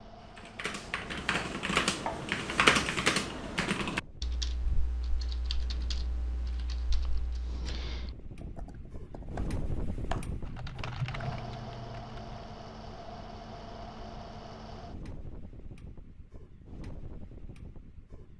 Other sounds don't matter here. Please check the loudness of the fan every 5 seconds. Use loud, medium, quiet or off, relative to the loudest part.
medium, loud, loud, medium.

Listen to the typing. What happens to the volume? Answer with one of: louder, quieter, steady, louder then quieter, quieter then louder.
quieter then louder.